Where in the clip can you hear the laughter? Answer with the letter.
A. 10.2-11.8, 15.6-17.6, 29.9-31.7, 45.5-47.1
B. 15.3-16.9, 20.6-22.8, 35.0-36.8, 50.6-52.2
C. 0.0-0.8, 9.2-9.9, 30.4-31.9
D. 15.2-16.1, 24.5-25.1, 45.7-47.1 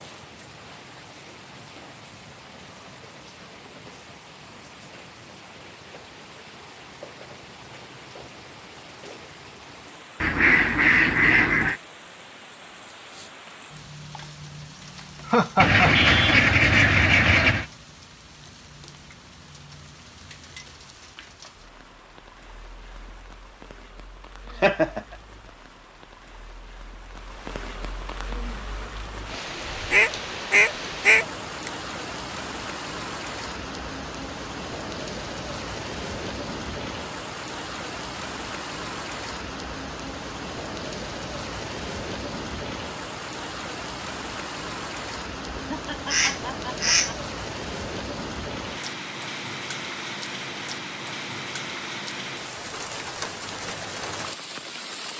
D.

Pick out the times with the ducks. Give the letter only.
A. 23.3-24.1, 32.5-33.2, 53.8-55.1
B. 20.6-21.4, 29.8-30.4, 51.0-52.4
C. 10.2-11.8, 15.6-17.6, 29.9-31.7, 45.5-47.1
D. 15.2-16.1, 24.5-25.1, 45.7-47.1
C.